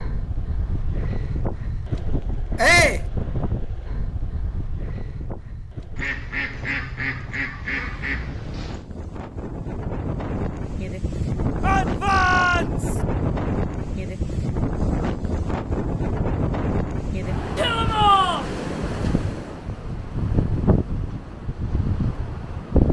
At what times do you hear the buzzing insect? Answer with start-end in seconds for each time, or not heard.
not heard.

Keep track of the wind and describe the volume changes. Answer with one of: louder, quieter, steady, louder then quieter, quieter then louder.
quieter then louder.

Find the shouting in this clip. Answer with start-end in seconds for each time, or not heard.
2.5-3.0, 11.6-12.9, 17.6-18.4.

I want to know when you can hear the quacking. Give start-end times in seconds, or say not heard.
6.0-8.9.